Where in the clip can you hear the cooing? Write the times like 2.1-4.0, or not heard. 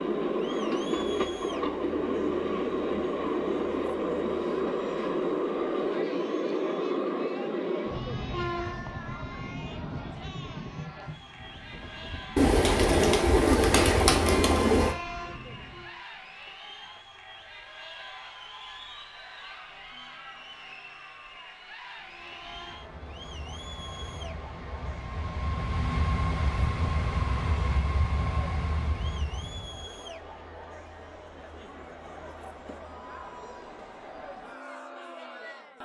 12.3-14.9.